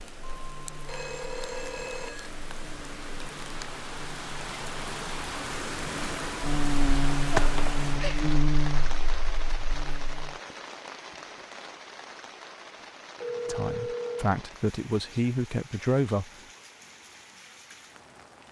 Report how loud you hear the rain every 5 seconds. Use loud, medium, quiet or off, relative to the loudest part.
medium, loud, medium, quiet.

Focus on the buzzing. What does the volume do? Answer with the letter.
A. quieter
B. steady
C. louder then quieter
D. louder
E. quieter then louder
D.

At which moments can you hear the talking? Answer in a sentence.
You can hear the talking from 13.4 to 16.3 s.